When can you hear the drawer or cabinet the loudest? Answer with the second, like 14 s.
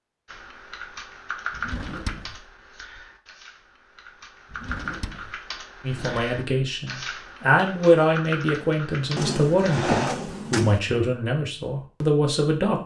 10 s.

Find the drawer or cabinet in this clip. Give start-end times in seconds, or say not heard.
1.5-2.5, 4.5-6.2, 9.2-10.8.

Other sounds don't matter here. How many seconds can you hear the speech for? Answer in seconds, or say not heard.
7 s.